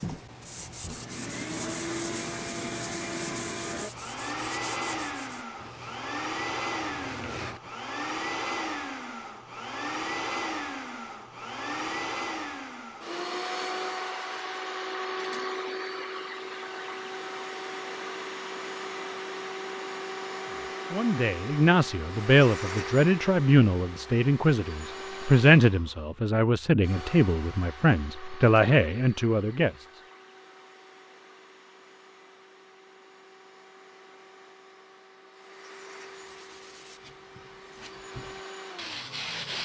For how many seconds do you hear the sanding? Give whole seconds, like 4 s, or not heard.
11 s.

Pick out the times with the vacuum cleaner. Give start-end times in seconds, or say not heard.
0.0-39.5.